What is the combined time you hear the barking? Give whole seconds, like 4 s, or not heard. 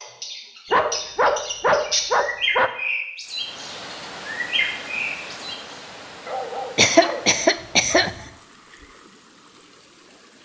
4 s.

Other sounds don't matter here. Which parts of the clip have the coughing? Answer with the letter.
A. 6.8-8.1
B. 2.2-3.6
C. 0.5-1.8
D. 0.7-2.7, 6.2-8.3
A.